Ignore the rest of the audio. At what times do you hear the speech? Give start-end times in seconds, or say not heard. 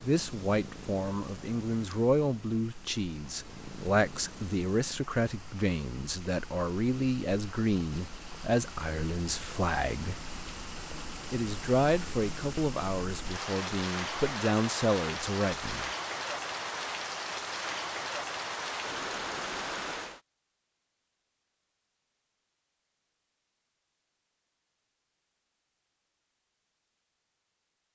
0.0-10.2, 11.3-15.9.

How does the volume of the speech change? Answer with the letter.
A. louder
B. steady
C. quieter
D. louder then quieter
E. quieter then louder
B.